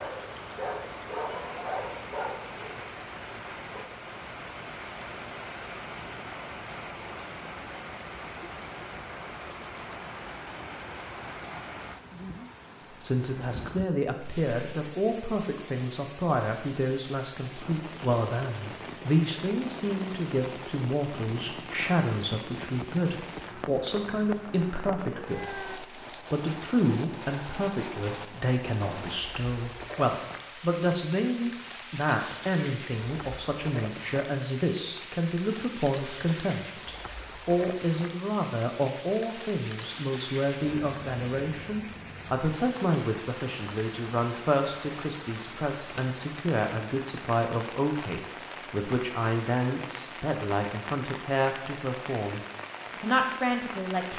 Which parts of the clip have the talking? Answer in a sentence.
The talking can be heard from 13.0 to 54.1 s.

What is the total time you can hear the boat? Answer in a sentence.
The boat can't be heard in this clip.